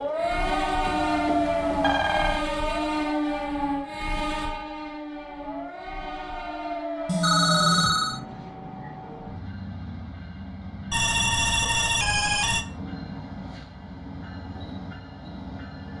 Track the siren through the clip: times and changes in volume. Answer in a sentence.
You can hear the siren from 0.0 to 7.8 s, getting quieter then louder.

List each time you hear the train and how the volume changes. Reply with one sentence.
You can hear the train from 0.0 to 15.9 s, getting quieter.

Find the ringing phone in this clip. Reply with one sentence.
The ringing phone can be heard from 0.8 to 2.5 s, from 7.0 to 8.2 s and from 10.9 to 12.7 s.